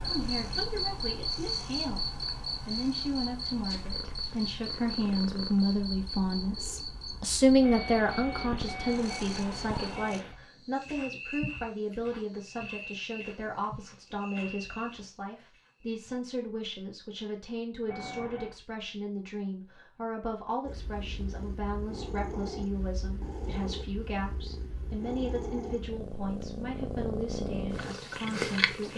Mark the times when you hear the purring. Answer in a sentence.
The purring can be heard from 0.1 to 10.2 s and from 20.6 to 28.9 s.